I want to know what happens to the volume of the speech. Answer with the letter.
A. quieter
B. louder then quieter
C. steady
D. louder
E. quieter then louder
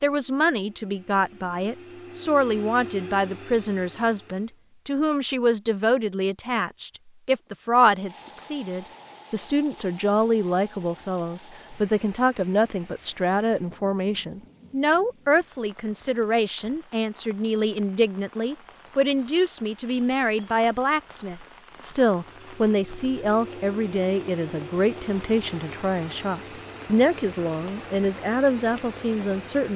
C.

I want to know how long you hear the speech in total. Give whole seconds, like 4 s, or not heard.
30 s.